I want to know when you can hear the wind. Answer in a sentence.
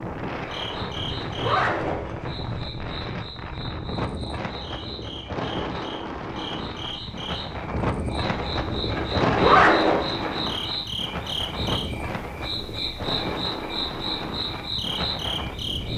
The wind can be heard from 0.0 to 15.9 s.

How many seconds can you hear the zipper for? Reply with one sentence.
The zipper can be heard for 3 seconds in total.